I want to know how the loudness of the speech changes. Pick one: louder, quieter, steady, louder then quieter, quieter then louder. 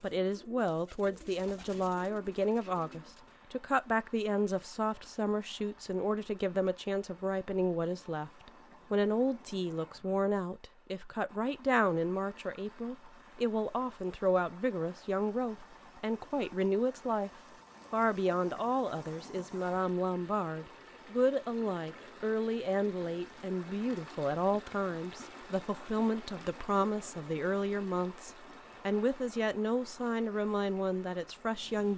steady.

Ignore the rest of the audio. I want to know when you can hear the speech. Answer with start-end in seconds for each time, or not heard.
0.0-17.3, 17.9-31.9.